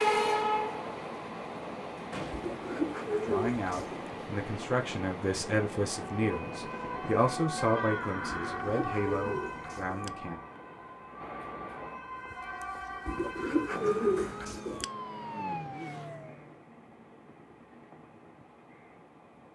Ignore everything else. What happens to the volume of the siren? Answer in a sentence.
The loudness of the siren goes down, then up.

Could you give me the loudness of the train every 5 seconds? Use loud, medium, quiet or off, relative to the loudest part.
loud, medium, quiet, quiet.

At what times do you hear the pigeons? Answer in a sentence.
The pigeons can be heard from 2.3 to 4.0 s, from 8.3 to 10.1 s and from 13.1 to 14.8 s.